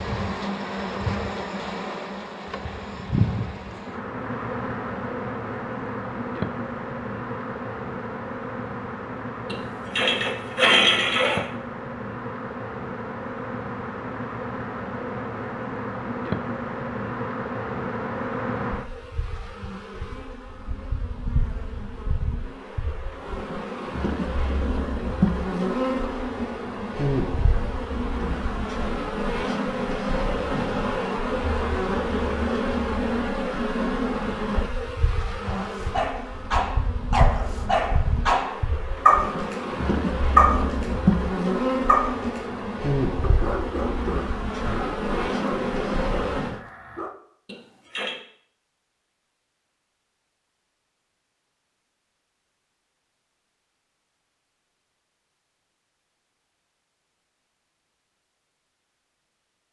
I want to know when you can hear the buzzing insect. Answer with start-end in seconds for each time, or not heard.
0.0-46.6.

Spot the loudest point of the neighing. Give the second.
11 s.